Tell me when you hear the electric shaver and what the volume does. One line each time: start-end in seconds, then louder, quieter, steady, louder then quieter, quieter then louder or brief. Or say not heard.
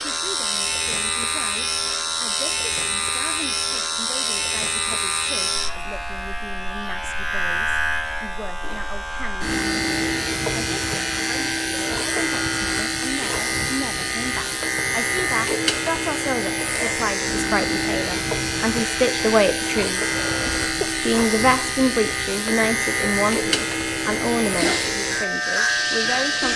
0.0-26.5 steady.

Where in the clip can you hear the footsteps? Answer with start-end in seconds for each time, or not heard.
not heard.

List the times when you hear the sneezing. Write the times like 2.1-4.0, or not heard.
20.1-20.9.